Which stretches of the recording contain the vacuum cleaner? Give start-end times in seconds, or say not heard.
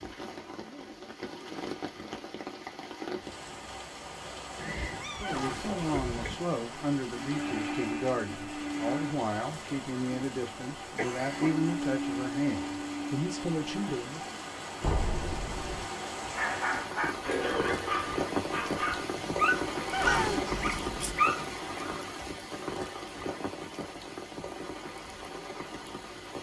7.2-9.2, 11.5-13.9.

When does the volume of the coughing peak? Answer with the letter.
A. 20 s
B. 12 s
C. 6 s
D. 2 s
A.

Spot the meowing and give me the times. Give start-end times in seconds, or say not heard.
4.5-6.3, 14.8-15.8, 20.1-21.2.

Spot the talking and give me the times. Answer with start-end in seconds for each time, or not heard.
5.0-14.2.